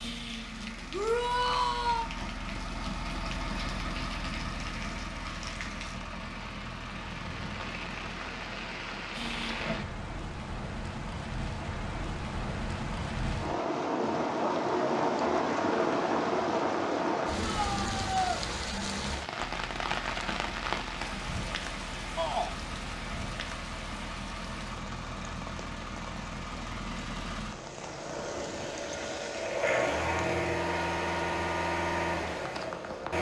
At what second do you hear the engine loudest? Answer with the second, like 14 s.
30 s.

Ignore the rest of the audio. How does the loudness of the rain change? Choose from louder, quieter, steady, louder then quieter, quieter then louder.
louder then quieter.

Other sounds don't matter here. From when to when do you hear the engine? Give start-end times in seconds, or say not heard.
0.0-9.8, 19.4-33.1.